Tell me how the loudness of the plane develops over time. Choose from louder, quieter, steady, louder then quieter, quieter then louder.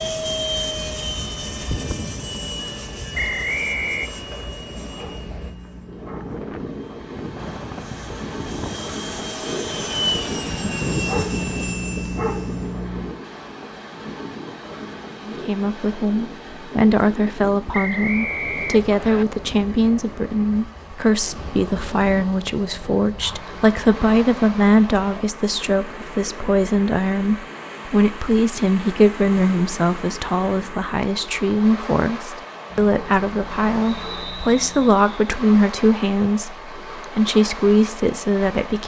quieter then louder.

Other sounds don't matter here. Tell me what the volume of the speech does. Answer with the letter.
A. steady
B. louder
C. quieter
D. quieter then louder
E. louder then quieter
A.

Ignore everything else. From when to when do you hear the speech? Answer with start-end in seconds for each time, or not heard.
15.2-38.8.